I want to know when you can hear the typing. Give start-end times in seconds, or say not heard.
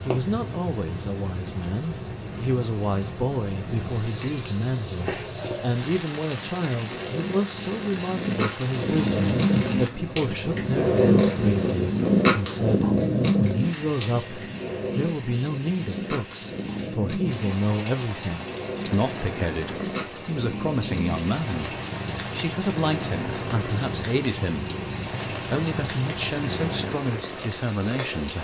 not heard.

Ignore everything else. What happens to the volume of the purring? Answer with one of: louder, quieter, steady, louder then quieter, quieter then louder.
louder then quieter.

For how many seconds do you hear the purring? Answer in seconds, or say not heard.
28 s.